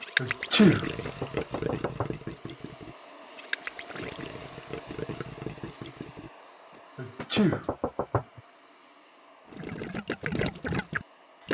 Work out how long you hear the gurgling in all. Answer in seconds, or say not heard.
9 s.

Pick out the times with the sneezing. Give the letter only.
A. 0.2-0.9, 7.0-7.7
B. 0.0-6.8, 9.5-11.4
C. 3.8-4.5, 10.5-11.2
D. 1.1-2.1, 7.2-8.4
A.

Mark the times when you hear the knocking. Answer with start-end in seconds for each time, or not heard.
1.1-2.1, 7.2-8.4.